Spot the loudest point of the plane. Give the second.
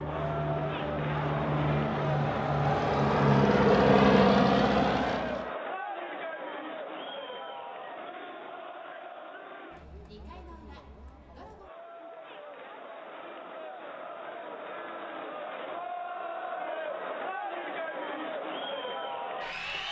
4 s.